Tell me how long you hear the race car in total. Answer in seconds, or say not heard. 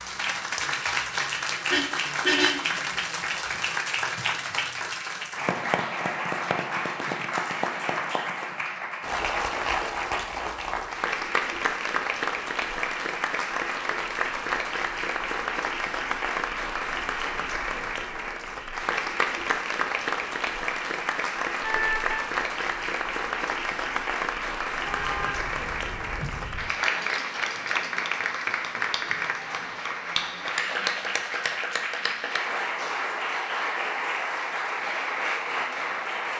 not heard.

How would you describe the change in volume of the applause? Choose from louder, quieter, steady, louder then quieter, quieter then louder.
steady.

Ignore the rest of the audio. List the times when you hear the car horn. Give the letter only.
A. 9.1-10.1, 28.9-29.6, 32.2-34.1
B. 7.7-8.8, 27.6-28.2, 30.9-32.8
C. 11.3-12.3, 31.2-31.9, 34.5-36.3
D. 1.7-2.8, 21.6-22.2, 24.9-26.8
D.